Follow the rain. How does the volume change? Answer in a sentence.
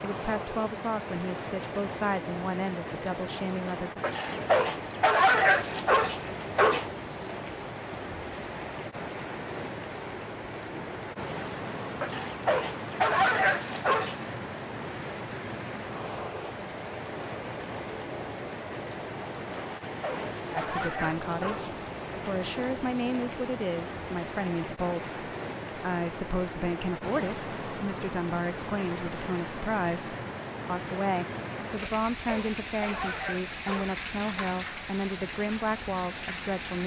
The volume of the rain stays about the same.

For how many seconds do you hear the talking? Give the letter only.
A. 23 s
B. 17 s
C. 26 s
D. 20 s
D.